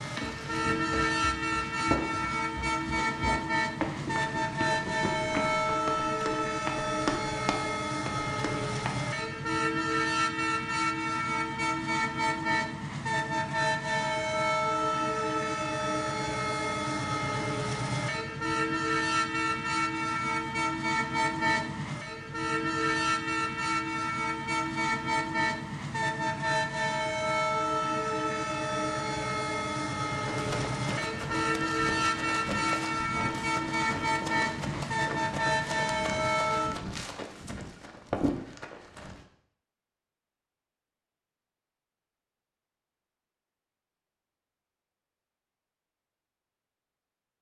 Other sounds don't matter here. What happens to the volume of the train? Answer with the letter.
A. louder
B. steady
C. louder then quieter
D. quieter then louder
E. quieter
B.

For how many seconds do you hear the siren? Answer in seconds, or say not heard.
not heard.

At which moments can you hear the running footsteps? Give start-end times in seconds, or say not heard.
0.0-9.0, 30.2-39.2.